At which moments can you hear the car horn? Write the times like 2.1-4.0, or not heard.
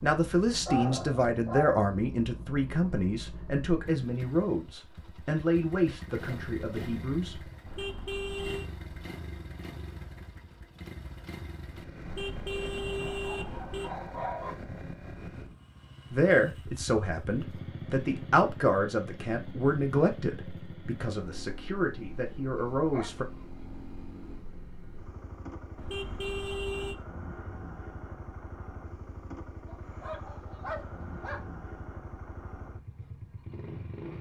7.7-8.7, 12.1-13.9, 25.8-26.9.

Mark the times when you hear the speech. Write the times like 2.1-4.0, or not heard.
0.0-7.4, 16.1-23.2.